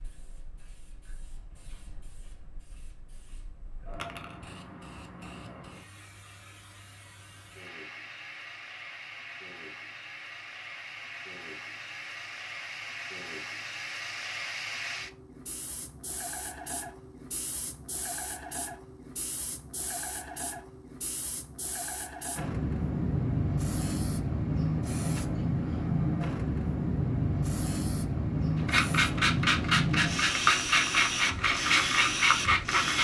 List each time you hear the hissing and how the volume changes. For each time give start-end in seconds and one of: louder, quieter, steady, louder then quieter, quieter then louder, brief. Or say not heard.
0.0-32.9 louder.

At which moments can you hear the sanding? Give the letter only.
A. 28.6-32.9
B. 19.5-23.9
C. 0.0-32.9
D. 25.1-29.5
A.